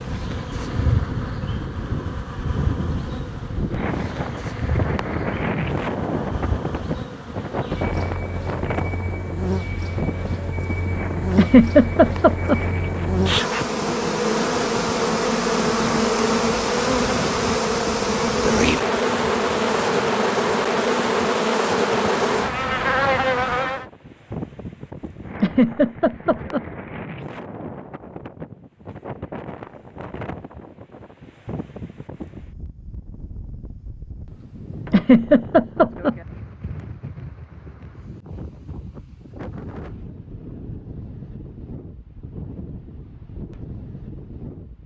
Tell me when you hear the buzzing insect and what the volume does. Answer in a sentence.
The buzzing insect can be heard from 0.0 to 23.9 s, getting louder.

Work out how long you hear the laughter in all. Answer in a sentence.
You can hear the laughter for 4 seconds altogether.